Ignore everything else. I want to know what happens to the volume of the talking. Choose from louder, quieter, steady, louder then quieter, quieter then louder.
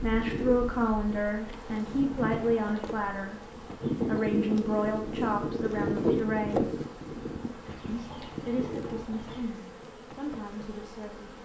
quieter.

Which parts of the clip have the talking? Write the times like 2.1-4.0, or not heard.
0.0-6.7, 7.8-11.3.